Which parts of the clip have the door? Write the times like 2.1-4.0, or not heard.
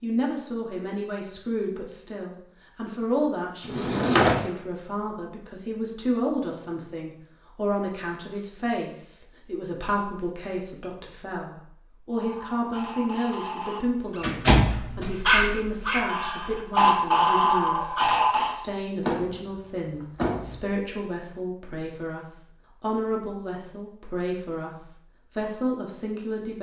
3.6-4.3, 14.2-15.1, 19.0-20.6.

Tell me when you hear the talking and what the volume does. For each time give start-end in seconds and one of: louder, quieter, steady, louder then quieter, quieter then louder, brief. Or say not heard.
0.0-26.5 steady.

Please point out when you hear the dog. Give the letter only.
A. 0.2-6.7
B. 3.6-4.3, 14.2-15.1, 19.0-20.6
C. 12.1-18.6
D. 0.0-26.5
C.